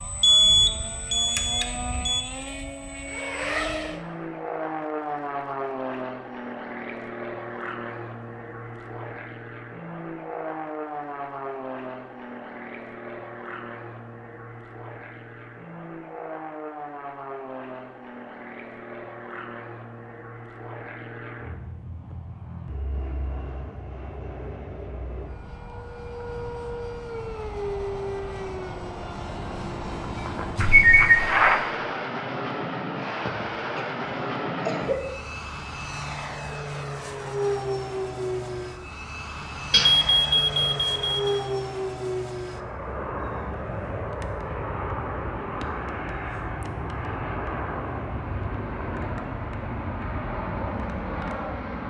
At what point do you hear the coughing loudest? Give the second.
35 s.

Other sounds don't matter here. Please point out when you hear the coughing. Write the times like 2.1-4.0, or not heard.
33.2-35.1.